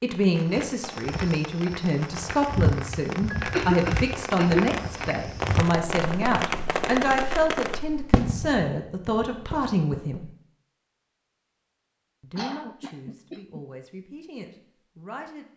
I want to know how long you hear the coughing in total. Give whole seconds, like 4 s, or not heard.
3 s.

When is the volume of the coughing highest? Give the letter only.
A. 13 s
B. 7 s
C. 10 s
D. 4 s
D.